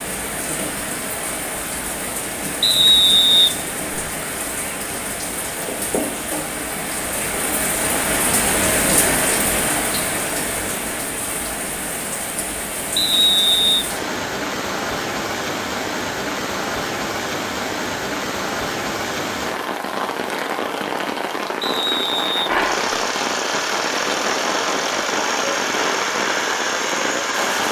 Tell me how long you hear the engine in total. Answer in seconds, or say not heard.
5 s.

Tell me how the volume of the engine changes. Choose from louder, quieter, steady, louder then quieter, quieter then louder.
steady.